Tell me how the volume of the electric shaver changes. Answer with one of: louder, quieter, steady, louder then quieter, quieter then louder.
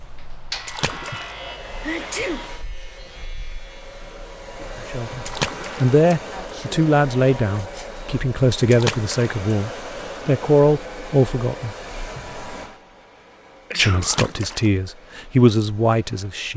quieter.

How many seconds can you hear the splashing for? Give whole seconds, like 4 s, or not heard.
3 s.